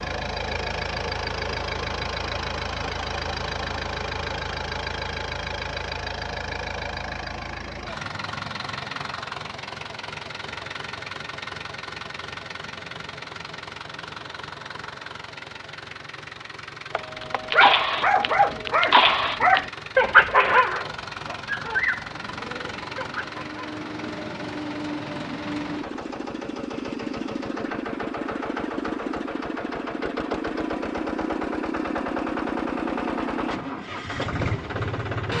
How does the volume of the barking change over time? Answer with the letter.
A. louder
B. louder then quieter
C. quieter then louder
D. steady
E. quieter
E.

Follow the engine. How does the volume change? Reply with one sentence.
The loudness of the engine goes down, then up.